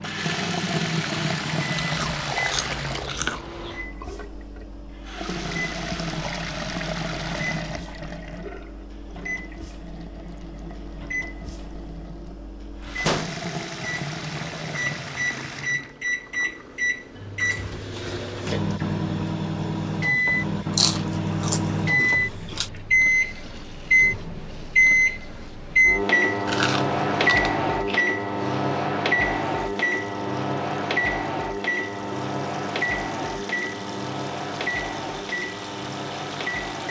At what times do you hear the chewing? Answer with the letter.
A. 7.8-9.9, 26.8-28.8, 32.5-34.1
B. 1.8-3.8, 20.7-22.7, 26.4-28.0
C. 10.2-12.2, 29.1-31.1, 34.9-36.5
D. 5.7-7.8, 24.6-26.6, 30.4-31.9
B.